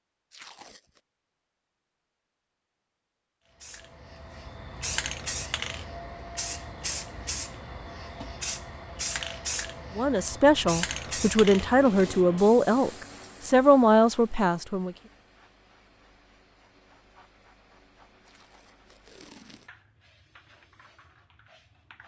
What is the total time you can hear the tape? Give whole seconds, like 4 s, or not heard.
2 s.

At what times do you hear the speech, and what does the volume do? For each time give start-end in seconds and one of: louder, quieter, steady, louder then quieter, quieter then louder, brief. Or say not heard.
9.9-14.9 steady.